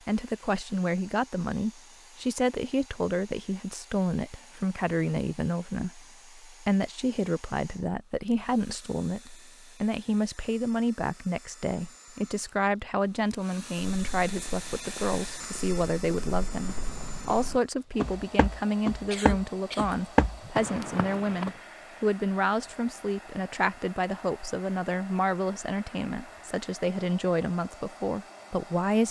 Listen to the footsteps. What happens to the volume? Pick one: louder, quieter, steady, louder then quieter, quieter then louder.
louder.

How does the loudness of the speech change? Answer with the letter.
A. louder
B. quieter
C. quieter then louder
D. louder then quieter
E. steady
E.